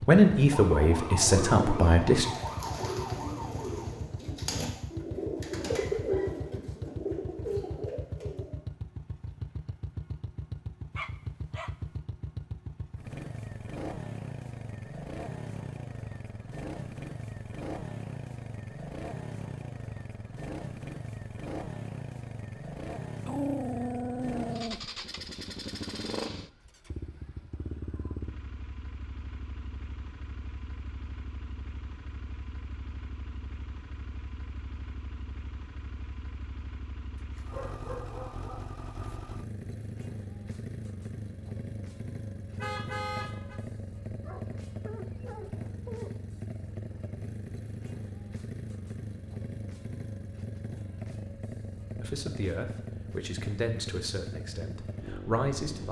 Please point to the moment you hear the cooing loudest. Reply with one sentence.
The loudest moment of the cooing is at 6 seconds.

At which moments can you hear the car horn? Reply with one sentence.
The car horn can be heard from 42.5 to 43.6 s.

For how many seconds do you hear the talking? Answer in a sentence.
You can hear the talking for 6 seconds altogether.